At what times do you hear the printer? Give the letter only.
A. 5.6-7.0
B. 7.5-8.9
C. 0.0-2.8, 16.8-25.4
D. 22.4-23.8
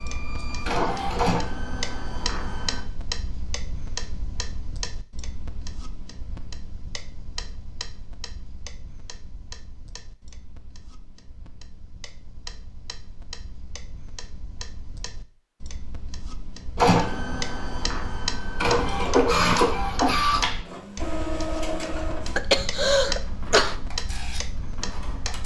C.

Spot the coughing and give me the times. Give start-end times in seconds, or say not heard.
22.4-23.8.